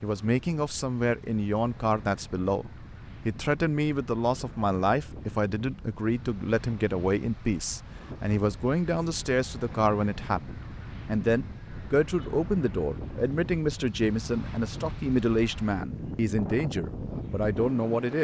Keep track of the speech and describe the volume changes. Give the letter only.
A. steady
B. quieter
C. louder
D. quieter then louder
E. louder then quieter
A.